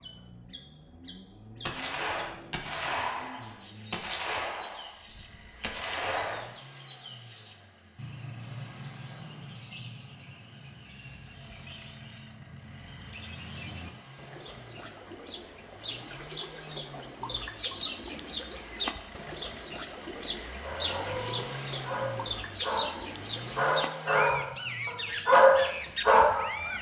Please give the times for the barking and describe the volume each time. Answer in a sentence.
The barking can be heard from 20.6 to 26.6 s, getting louder.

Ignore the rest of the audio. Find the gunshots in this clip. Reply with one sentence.
The gunshots can be heard from 1.6 to 6.5 s.